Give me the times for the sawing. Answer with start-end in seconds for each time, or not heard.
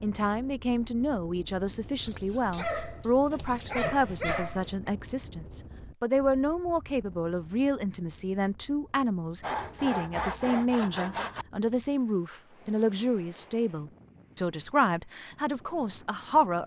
3.3-4.8, 9.4-11.4.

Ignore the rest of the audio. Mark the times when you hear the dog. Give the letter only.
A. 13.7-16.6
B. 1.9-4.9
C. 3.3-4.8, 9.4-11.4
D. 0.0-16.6
B.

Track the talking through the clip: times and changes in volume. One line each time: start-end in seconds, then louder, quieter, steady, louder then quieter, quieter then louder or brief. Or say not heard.
0.0-16.6 steady.